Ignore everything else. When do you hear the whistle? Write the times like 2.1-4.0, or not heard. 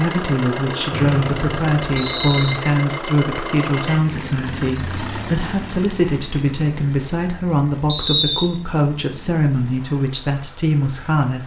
0.9-2.5, 7.8-8.5.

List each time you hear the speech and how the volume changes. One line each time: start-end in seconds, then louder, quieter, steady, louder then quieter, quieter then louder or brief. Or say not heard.
0.0-11.4 steady.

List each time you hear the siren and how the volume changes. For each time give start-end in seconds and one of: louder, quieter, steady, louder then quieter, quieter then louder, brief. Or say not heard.
not heard.